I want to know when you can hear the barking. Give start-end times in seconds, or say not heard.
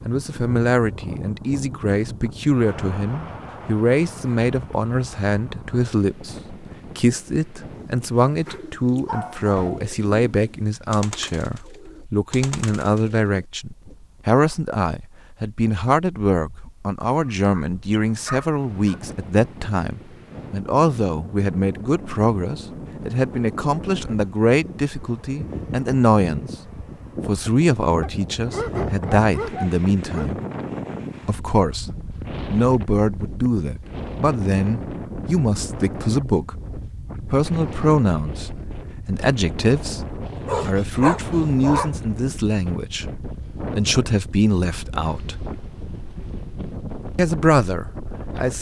8.2-9.8, 17.2-19.0, 28.0-30.3, 40.4-42.0.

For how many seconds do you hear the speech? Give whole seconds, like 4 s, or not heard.
44 s.